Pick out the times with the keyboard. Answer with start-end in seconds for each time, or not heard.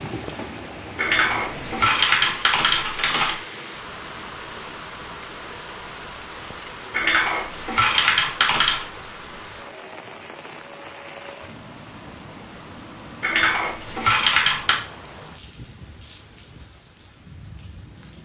0.9-3.4, 6.9-8.8, 13.2-14.8.